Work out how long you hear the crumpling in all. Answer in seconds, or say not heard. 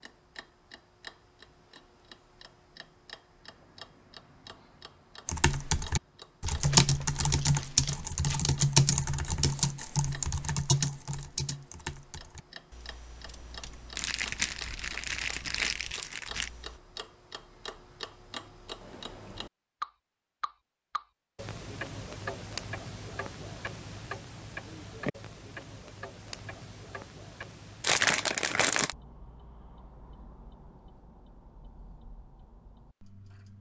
6 s.